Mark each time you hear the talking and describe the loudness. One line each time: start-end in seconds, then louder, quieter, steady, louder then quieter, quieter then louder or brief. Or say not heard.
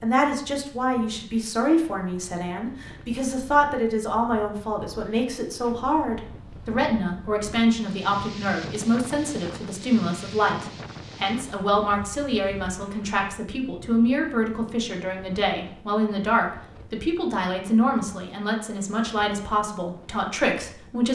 0.0-21.1 steady.